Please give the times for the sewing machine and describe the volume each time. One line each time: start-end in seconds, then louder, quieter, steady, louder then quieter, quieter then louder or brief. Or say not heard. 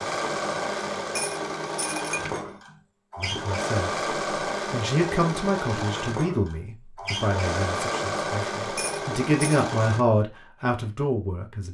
0.0-10.1 steady.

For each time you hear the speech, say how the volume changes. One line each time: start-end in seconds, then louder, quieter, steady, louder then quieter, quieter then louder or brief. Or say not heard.
3.1-3.9 brief
4.7-11.6 quieter then louder.